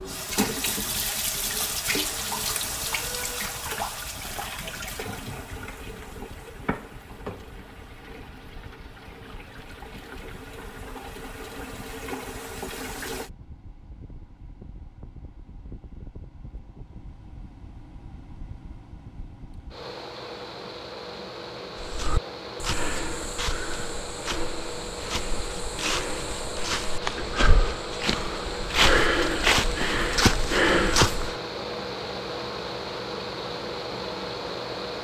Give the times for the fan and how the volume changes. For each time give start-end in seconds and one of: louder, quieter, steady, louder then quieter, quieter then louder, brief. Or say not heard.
0.0-35.0 louder.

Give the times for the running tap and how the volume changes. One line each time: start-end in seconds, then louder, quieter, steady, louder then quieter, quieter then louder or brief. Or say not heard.
0.0-13.3 quieter then louder.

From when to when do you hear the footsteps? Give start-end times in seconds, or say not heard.
21.8-31.4.